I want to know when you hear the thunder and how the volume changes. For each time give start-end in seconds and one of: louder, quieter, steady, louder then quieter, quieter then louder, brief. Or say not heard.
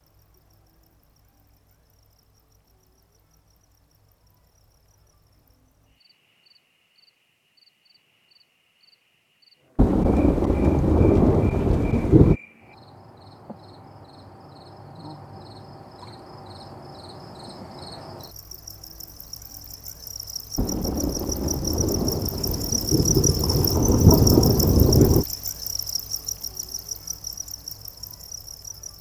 9.8-12.3 brief
20.6-25.2 louder.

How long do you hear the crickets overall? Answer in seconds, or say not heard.
29 s.